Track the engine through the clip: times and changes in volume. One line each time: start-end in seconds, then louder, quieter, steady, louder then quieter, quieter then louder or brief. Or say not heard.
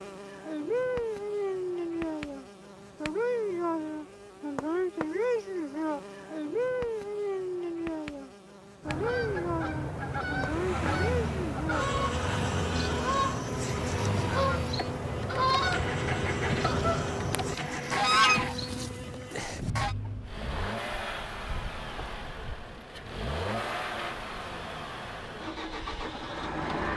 10.2-26.9 steady.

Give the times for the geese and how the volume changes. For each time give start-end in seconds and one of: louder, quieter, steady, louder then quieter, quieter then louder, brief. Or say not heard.
8.8-19.9 louder.